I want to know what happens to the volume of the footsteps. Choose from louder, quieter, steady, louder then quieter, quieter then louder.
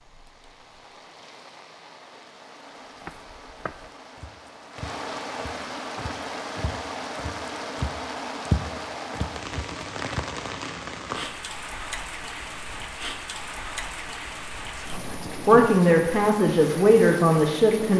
louder then quieter.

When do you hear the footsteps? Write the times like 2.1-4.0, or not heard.
3.0-10.3.